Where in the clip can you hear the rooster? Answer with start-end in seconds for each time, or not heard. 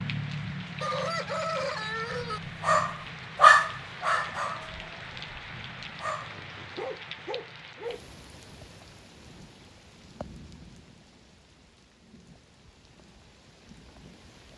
0.8-2.4.